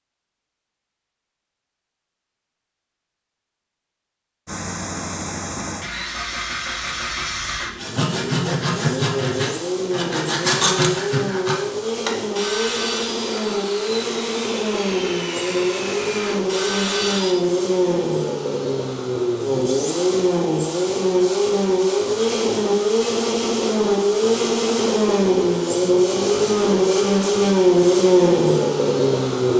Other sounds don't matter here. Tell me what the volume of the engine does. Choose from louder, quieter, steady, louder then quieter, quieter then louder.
louder.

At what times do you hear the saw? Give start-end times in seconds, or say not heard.
7.8-17.4.